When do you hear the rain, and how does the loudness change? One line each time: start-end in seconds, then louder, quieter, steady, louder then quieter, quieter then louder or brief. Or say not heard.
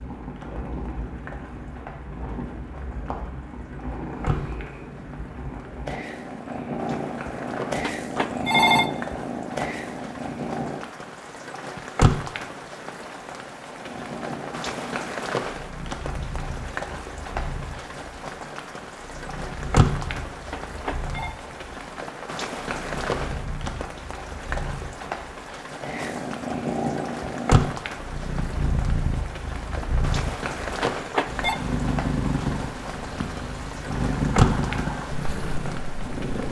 0.0-36.4 louder.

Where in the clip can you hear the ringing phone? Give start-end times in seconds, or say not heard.
7.8-8.9, 20.5-21.4, 30.8-31.6.